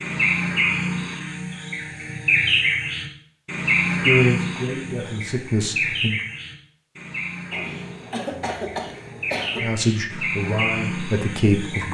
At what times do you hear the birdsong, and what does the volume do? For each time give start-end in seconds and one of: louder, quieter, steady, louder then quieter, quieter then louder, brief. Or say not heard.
0.0-11.8 quieter then louder.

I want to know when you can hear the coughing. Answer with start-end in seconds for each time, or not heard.
7.5-9.7.